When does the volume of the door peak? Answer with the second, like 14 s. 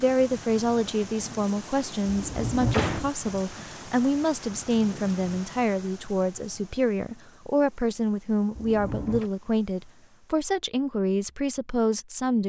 3 s.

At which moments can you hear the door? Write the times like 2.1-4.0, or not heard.
2.0-3.1, 8.6-9.3.